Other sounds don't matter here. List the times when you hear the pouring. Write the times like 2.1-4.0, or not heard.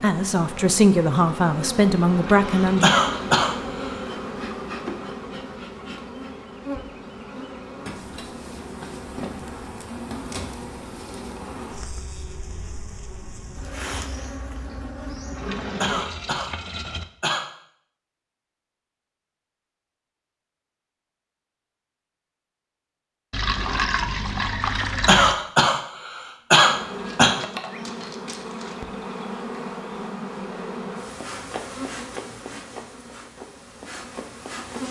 2.1-2.9, 15.3-17.1, 23.3-25.4.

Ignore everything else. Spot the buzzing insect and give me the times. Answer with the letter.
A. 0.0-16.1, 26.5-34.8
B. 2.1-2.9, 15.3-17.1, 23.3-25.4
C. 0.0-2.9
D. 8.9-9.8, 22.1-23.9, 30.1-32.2
A.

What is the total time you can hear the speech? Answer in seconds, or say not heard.
3 s.